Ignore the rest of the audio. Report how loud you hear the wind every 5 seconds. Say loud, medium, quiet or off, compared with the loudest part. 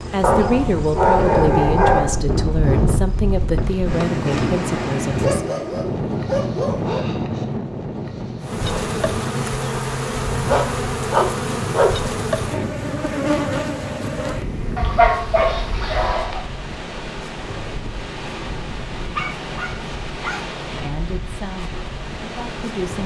loud, loud, medium, medium, medium.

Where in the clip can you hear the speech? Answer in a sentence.
You can hear the speech from 0.1 to 5.6 s and from 20.8 to 23.0 s.